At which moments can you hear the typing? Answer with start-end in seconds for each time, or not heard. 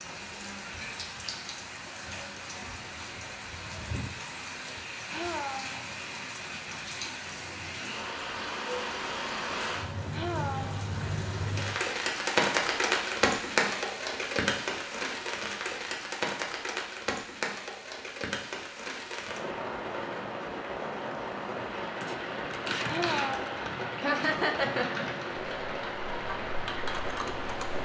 22.0-27.8.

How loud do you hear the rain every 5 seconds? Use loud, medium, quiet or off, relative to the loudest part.
medium, medium, loud, medium, medium, medium.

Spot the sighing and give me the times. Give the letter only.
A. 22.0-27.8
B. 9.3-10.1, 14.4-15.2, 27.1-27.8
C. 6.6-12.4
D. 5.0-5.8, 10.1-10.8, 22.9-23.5
D.